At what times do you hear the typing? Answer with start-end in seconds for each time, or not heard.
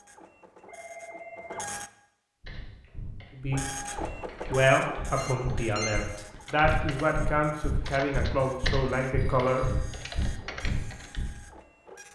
2.4-11.3.